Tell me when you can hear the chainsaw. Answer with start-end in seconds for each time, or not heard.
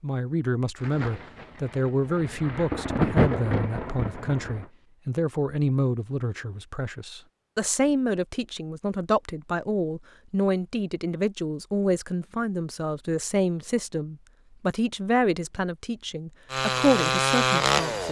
16.4-18.0.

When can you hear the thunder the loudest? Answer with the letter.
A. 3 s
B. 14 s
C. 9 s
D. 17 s
A.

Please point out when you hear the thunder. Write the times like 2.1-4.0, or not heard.
0.8-4.7.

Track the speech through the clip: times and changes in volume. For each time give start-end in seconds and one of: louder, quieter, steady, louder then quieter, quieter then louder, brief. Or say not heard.
0.0-18.0 steady.